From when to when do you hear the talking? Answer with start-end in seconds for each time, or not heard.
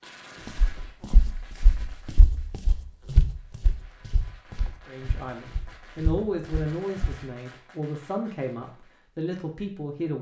4.8-10.1.